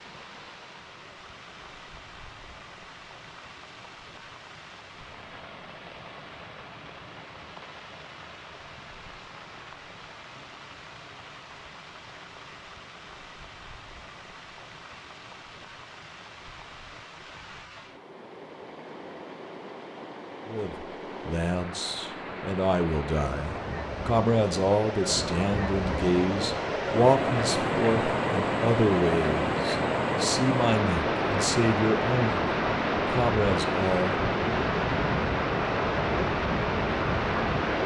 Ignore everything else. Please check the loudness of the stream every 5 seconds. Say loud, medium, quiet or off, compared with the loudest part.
quiet, quiet, quiet, quiet, medium, loud, loud, loud.